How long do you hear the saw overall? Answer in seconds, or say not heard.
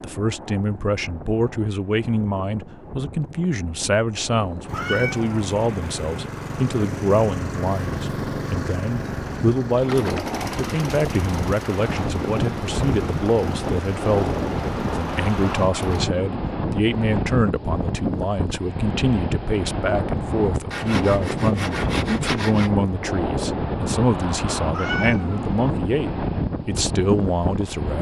2 s.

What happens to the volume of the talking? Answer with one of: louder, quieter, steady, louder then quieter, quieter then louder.
steady.